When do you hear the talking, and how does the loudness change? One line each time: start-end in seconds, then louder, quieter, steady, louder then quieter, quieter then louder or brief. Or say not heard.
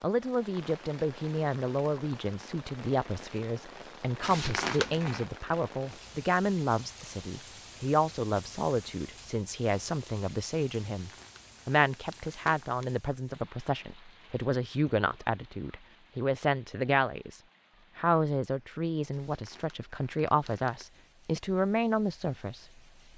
0.0-22.6 steady.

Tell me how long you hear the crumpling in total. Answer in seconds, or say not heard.
5 s.